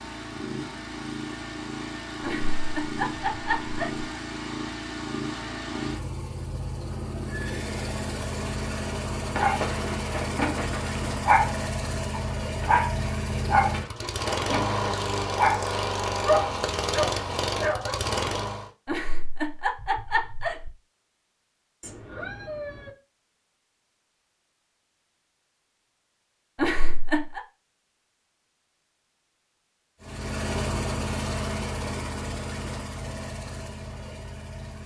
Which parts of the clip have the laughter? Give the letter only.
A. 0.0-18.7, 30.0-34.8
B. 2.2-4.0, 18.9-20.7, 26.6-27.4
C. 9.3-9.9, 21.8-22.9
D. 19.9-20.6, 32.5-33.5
B.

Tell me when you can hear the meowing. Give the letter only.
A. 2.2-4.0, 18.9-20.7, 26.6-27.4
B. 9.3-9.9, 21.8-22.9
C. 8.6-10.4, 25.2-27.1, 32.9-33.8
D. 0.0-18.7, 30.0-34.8
B.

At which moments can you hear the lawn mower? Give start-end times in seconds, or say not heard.
0.0-18.7, 30.0-34.8.